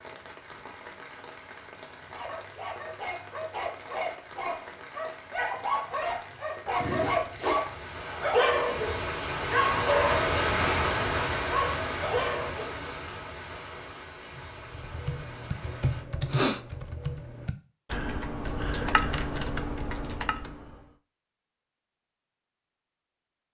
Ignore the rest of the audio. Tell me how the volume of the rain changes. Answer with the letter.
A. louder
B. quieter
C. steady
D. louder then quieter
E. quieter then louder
D.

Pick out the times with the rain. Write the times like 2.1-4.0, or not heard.
0.0-16.1.